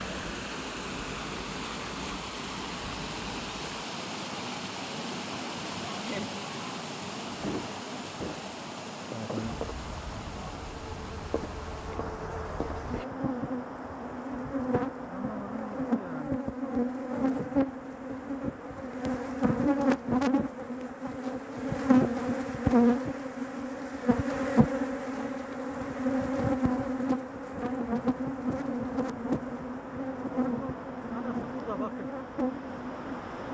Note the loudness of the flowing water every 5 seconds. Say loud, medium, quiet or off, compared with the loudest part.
loud, loud, medium, medium, quiet, medium, medium.